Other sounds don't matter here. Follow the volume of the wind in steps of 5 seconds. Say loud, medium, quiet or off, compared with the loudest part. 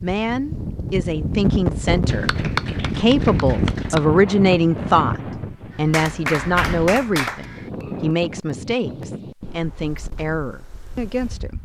loud, medium, quiet.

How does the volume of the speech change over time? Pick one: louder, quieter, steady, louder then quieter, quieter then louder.
louder then quieter.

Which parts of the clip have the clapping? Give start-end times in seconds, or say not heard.
2.0-4.0, 5.9-7.5.